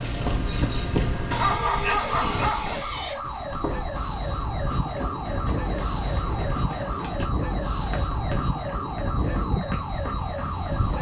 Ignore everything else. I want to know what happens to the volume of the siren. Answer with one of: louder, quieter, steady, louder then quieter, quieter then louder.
steady.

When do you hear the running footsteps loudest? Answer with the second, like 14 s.
1 s.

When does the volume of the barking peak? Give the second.
2 s.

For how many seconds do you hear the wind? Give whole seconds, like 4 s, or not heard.
11 s.